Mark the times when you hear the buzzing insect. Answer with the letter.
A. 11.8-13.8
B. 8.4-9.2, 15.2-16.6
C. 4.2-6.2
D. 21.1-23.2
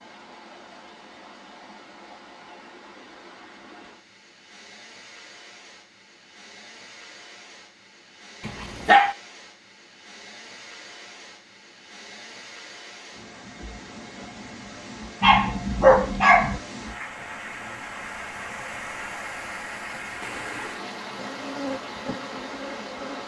D.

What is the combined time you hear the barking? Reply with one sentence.
The barking can be heard for 2 seconds in total.